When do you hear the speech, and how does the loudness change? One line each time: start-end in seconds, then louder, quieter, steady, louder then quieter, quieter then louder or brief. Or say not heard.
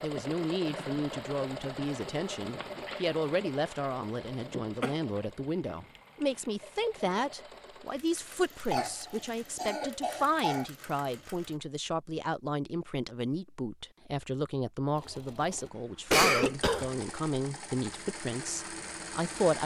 0.0-19.6 steady.